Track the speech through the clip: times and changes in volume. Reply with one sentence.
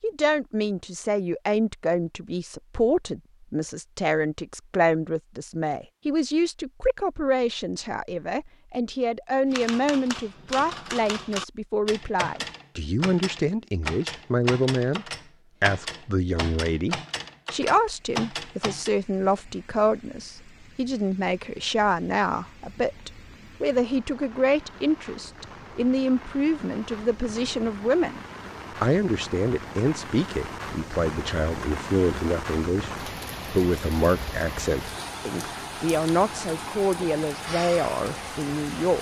You can hear the speech from 0.0 to 38.9 s, at a steady volume.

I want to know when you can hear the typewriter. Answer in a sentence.
The typewriter can be heard from 9.5 to 18.9 s.